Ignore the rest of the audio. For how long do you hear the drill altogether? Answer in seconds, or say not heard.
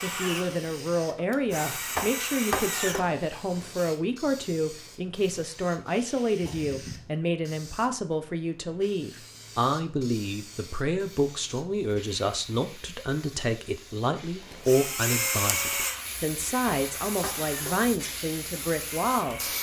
9 s.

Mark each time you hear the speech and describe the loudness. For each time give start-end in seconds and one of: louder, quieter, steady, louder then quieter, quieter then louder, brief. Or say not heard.
0.0-19.5 steady.